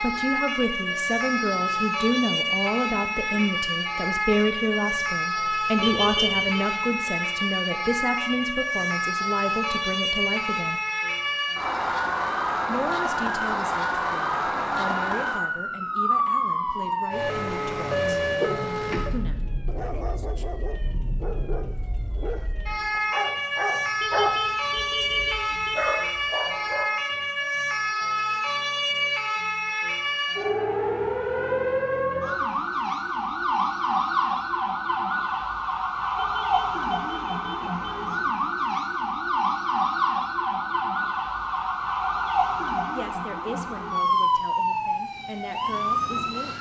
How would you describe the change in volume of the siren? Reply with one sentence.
The volume of the siren stays about the same.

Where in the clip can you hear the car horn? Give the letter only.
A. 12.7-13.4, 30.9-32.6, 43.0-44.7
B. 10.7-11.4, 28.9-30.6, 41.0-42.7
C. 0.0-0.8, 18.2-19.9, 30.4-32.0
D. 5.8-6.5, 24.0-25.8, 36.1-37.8
D.